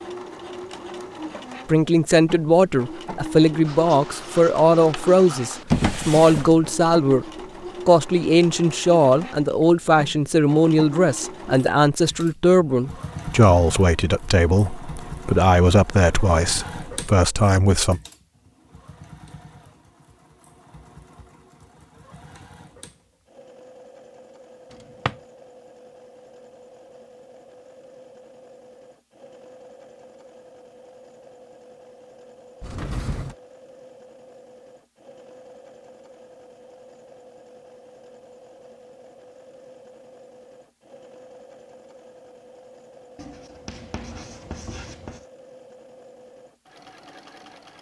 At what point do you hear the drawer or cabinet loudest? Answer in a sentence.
The loudest moment of the drawer or cabinet is at 6 seconds.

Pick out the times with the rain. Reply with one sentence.
The rain can't be heard in this clip.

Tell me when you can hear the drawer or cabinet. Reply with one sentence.
You can hear the drawer or cabinet from 5.7 to 6.7 s and from 32.6 to 33.4 s.